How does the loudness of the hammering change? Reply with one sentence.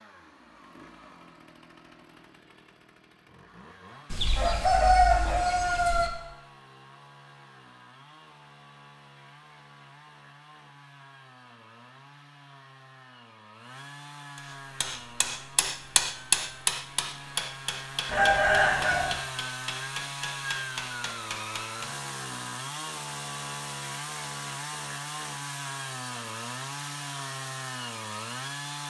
The loudness of the hammering goes down.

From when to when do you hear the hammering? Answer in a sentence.
The hammering can be heard from 14.3 to 21.9 s.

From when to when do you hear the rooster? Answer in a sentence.
The rooster can be heard from 4.1 to 6.1 s and from 18.1 to 19.1 s.